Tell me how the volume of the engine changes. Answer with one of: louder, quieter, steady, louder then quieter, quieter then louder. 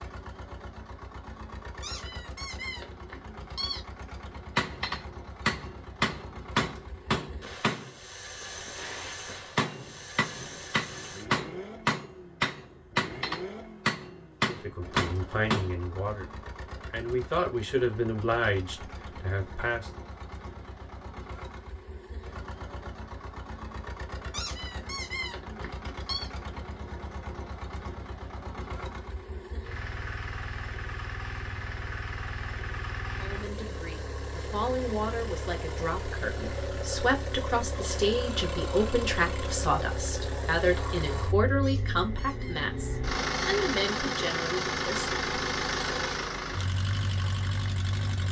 louder.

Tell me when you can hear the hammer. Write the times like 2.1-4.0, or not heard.
4.5-15.7.